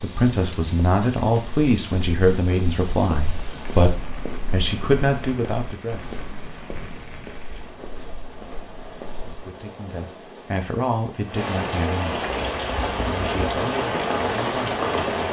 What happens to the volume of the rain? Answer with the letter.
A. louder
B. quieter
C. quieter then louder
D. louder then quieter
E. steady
A.